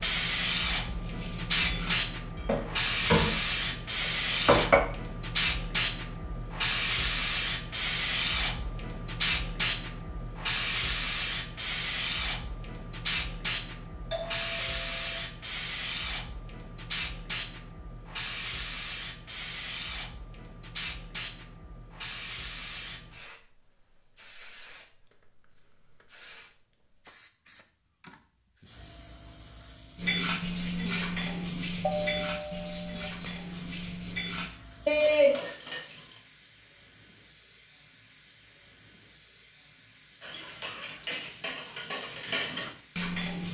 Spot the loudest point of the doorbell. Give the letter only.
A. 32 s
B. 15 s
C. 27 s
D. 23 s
A.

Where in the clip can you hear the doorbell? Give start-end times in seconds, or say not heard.
14.1-15.2, 31.8-33.4.